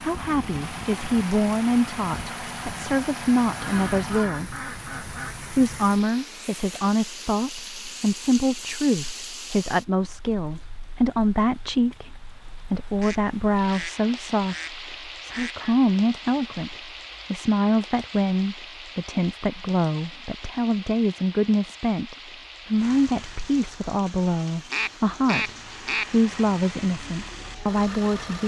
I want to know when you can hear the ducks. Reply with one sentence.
You can hear the ducks from 3.5 to 5.3 s, from 13.0 to 15.7 s and from 24.7 to 26.1 s.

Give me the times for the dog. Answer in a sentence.
You can't hear the dog here.